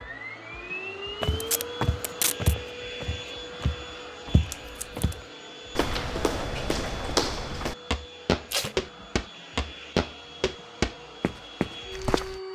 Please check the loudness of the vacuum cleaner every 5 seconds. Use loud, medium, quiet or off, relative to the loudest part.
loud, medium, loud.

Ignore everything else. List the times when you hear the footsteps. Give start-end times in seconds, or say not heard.
1.2-12.4.